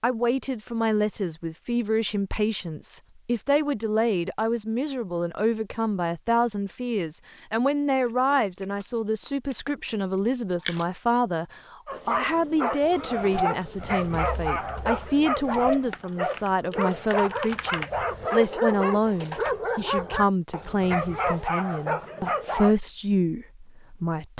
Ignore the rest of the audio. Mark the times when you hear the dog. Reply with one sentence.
You can hear the dog from 11.8 to 22.8 s.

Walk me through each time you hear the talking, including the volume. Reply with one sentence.
The talking can be heard from 0.0 to 24.3 s, at a steady volume.